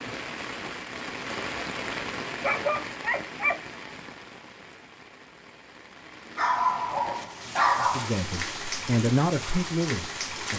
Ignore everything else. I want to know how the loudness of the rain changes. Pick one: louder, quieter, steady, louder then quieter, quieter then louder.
quieter then louder.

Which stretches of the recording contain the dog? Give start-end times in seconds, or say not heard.
2.4-3.5, 6.3-8.1.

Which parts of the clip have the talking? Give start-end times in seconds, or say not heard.
7.8-10.5.